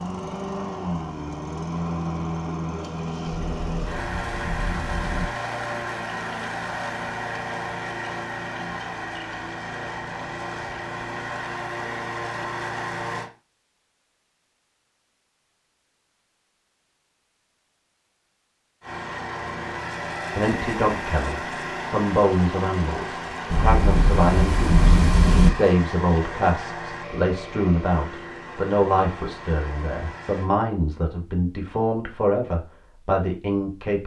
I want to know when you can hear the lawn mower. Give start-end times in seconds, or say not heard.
0.0-13.3, 18.8-30.5.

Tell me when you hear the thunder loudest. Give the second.
25 s.